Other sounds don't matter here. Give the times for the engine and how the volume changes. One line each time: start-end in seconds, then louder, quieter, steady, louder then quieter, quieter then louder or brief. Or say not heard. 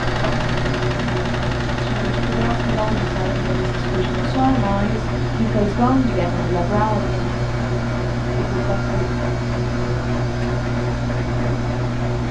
0.0-12.2 steady.